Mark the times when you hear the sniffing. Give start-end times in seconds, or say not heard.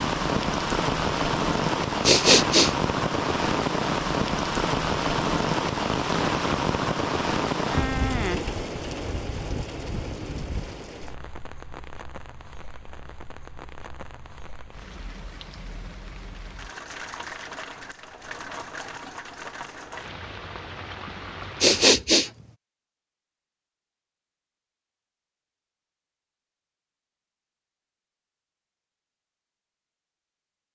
2.0-2.8, 21.6-22.3.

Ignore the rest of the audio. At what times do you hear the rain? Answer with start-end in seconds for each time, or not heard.
0.0-22.6.